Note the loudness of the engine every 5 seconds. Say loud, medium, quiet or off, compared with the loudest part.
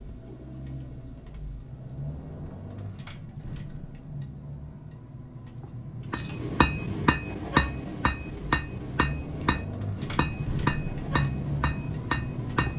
medium, medium, loud.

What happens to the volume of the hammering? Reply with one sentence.
The volume of the hammering goes down.